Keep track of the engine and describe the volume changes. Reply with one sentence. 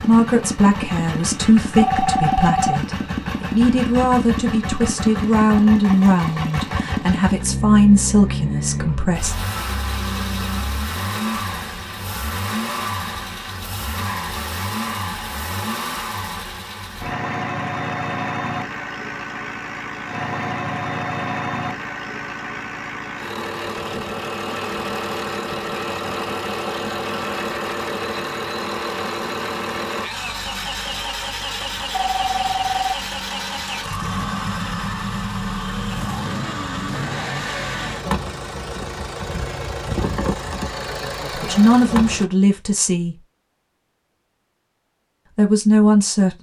The volume of the engine stays about the same.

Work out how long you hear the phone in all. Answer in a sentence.
You can hear the phone for 2 seconds altogether.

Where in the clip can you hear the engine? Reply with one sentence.
You can hear the engine from 0.0 to 42.2 s.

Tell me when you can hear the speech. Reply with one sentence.
The speech can be heard from 0.0 to 9.3 s, from 41.3 to 43.2 s and from 45.4 to 46.3 s.